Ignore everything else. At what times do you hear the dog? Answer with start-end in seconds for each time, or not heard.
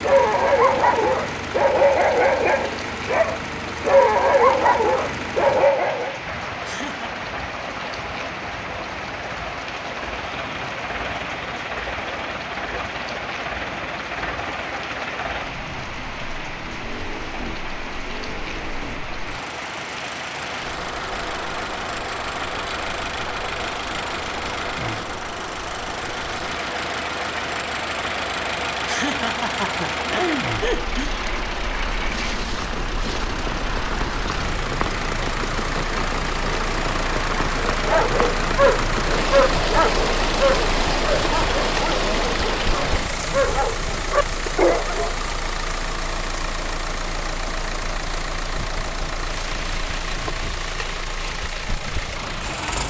0.0-6.2, 37.7-45.1.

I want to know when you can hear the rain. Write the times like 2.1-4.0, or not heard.
0.0-52.8.